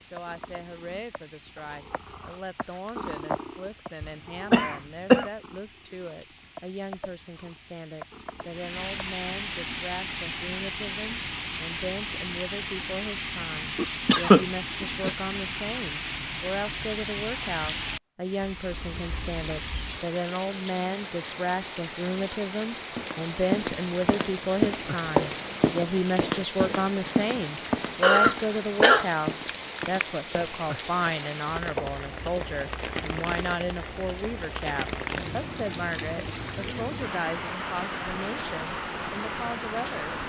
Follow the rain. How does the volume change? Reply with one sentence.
The volume of the rain goes up.